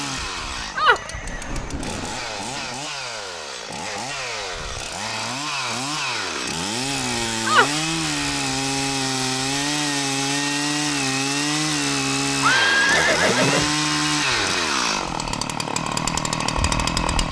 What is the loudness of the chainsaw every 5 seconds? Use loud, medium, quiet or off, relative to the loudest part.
medium, loud, loud, loud.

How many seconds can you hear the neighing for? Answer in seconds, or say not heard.
3 s.